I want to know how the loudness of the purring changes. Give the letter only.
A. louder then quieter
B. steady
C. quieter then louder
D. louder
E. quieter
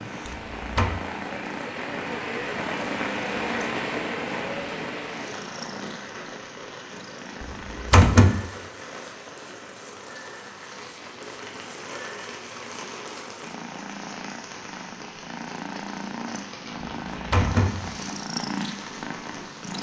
C.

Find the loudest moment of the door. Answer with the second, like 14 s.
8 s.